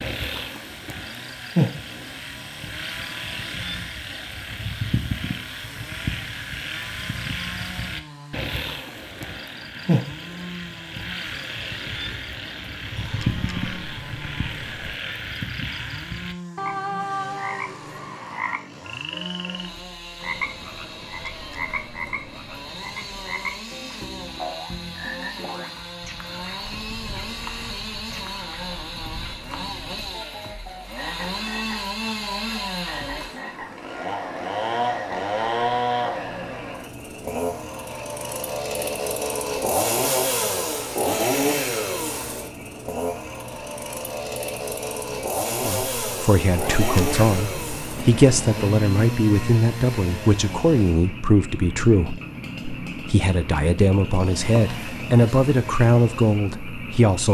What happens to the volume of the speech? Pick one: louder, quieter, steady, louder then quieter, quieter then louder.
steady.